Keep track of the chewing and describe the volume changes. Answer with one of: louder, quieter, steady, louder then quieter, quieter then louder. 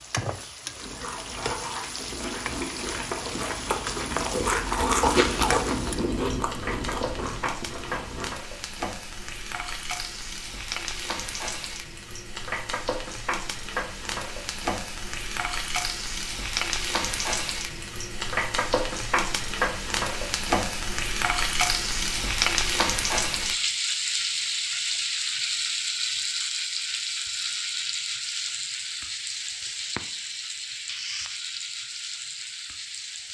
louder then quieter.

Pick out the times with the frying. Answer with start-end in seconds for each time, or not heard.
0.0-33.2.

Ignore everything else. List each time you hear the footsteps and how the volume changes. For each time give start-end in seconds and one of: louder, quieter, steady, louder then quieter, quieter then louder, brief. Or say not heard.
not heard.